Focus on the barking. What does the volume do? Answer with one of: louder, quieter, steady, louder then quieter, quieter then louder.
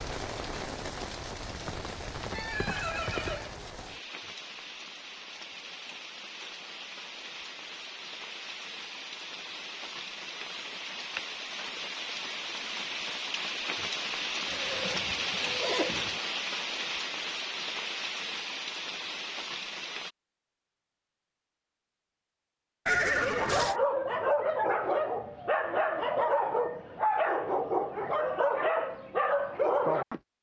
steady.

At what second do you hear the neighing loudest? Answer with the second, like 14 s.
23 s.